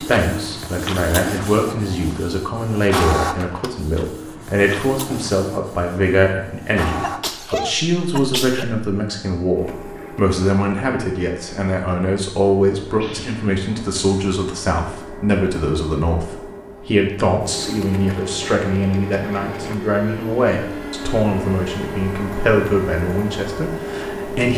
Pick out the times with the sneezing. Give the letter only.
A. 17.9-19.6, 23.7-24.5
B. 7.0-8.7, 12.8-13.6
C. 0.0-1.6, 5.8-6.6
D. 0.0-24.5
B.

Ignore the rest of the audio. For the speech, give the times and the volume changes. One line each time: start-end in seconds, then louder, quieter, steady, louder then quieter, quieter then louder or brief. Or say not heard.
0.0-24.5 steady.